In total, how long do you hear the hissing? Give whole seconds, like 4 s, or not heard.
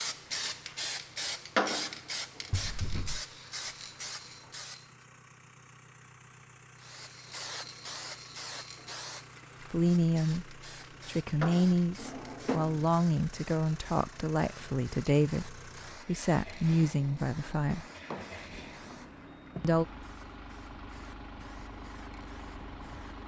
21 s.